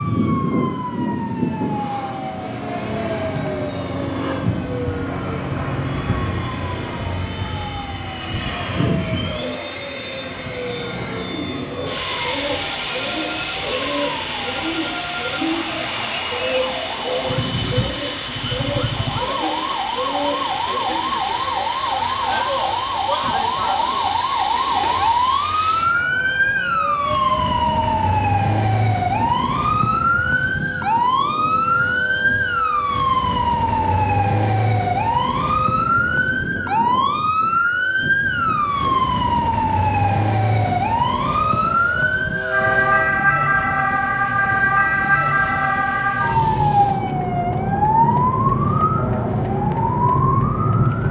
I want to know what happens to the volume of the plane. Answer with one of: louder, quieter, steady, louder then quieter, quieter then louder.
quieter.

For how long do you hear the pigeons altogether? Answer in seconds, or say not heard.
9 s.